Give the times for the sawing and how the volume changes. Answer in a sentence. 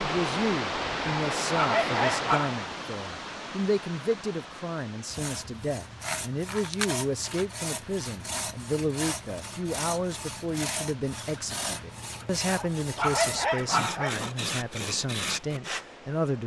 You can hear the sawing from 5.1 to 15.8 s, at a steady volume.